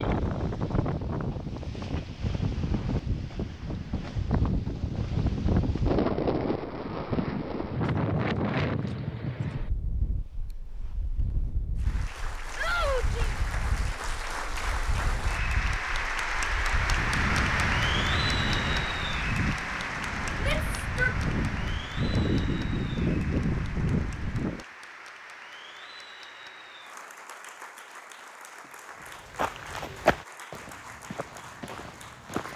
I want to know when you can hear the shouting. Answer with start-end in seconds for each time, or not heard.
12.6-13.3, 20.4-21.1.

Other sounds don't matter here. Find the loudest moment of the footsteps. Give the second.
30 s.